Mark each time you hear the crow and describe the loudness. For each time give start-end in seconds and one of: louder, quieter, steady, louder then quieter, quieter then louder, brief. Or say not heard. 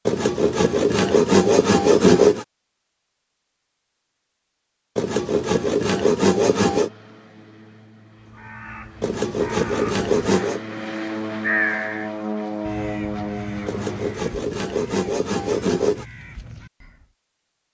8.2-10.1 brief
11.2-17.1 quieter.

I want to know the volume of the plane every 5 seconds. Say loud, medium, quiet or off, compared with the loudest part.
off, quiet, loud, off.